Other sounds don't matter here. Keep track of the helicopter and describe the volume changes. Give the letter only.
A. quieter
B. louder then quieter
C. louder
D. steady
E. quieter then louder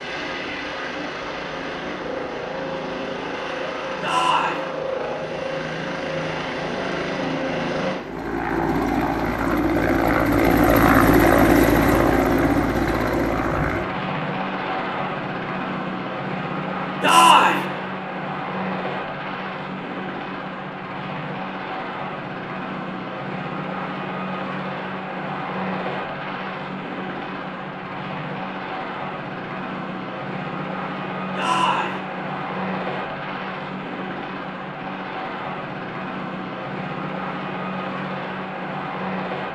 B.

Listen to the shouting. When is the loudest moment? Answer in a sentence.
The loudest moment of the shouting is at 17 seconds.